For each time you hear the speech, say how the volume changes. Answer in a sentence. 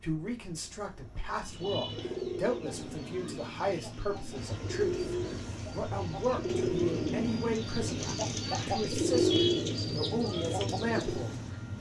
The speech can be heard from 0.0 to 11.4 s, at a steady volume.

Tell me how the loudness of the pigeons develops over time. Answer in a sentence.
The volume of the pigeons goes up.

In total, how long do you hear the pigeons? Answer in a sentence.
You can hear the pigeons for 10 seconds altogether.